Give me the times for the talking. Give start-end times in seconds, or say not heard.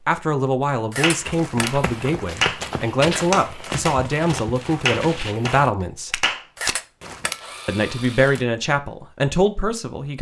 0.1-6.2, 7.7-10.1.